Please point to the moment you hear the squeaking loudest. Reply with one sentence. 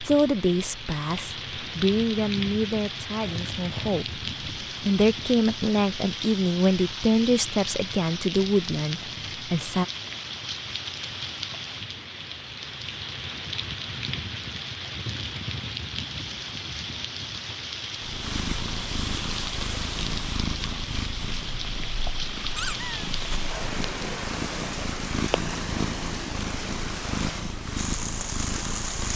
The loudest moment of the squeaking is at 23 seconds.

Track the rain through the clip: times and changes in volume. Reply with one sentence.
The rain can be heard from 0.0 to 29.1 s, at a steady volume.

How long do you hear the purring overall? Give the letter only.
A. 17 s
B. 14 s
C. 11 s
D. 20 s
C.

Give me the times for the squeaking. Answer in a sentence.
You can hear the squeaking from 3.2 to 3.9 s and from 22.6 to 23.1 s.